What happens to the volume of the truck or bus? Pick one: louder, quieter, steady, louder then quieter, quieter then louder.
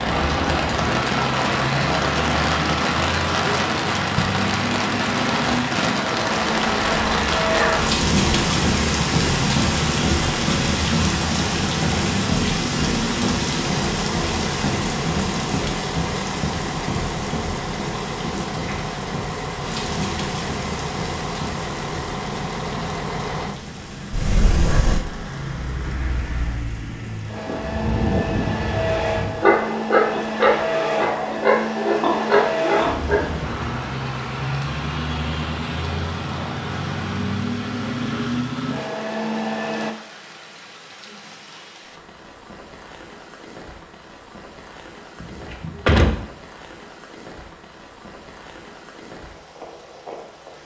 steady.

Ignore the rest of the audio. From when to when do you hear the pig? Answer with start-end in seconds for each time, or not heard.
27.4-33.3.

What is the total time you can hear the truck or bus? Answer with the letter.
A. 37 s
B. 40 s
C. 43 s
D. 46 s
B.